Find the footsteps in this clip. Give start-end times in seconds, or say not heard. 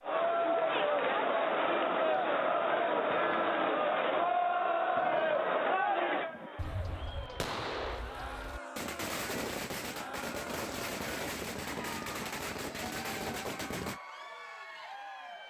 not heard.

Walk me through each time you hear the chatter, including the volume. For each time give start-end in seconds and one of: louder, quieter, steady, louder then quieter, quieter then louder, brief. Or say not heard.
0.0-15.4 quieter.